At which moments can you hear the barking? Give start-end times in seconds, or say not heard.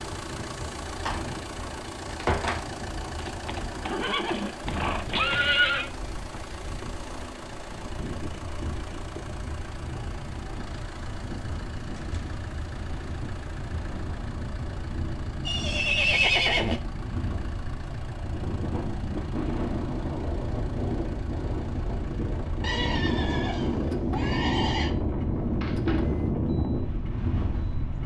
not heard.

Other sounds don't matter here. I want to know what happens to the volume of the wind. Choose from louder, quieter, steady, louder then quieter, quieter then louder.
louder.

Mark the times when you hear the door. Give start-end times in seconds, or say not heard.
1.1-2.6, 11.9-12.4, 25.6-26.3.